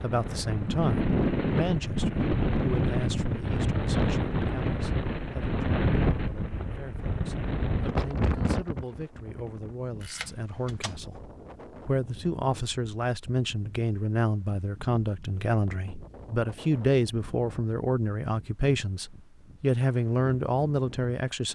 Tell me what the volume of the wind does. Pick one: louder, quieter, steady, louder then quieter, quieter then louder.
quieter.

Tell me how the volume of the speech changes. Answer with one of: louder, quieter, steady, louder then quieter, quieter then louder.
quieter then louder.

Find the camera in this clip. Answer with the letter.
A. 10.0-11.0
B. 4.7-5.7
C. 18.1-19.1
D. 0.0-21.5
A.